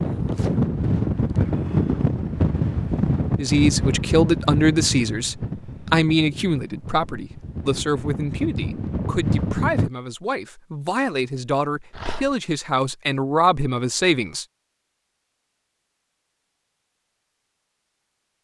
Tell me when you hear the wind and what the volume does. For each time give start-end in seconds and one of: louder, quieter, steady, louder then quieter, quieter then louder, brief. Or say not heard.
0.0-9.9 quieter then louder.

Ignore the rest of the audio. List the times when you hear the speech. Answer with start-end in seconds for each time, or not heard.
3.4-14.4.